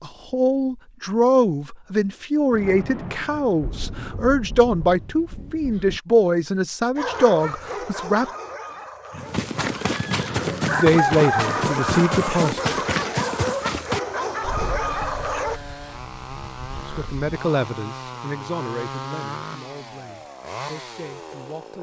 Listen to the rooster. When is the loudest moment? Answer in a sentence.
The volume of the rooster peaks at 11 seconds.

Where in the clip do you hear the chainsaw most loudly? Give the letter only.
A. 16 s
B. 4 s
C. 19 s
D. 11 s
C.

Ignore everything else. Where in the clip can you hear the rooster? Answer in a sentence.
You can hear the rooster from 9.1 to 12.4 s.